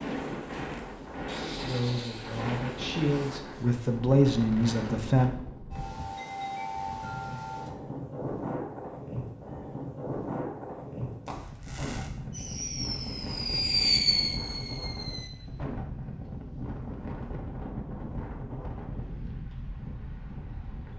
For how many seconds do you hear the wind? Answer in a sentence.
You can hear the wind for 21 seconds altogether.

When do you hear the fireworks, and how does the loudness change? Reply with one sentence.
The fireworks can be heard from 11.2 to 15.3 s, getting louder then quieter.